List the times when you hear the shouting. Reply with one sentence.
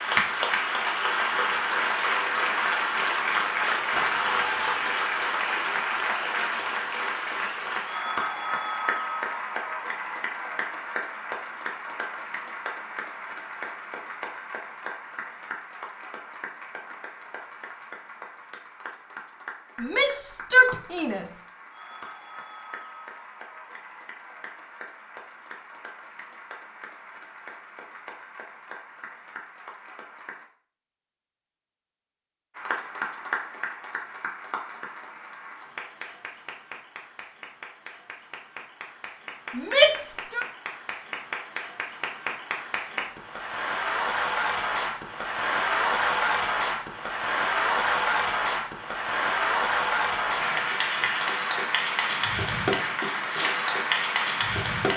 The shouting can be heard from 3.9 to 4.9 s, from 19.8 to 21.4 s and from 39.5 to 40.5 s.